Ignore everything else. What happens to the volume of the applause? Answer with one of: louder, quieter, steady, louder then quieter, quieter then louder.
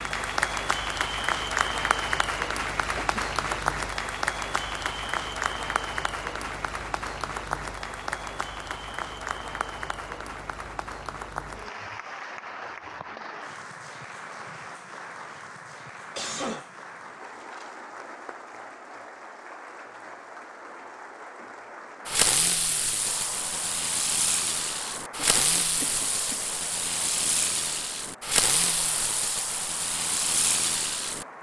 quieter.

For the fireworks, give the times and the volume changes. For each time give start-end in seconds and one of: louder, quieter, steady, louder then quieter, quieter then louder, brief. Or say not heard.
22.1-31.2 steady.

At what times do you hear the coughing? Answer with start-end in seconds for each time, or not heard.
3.0-3.6, 16.1-17.7, 25.1-26.4.